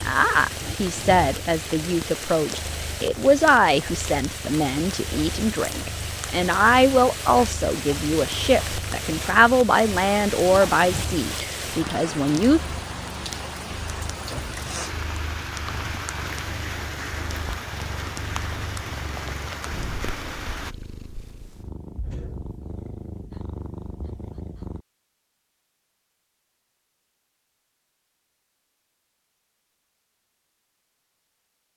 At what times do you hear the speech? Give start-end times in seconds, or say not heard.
0.0-12.6.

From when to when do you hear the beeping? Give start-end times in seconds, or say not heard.
not heard.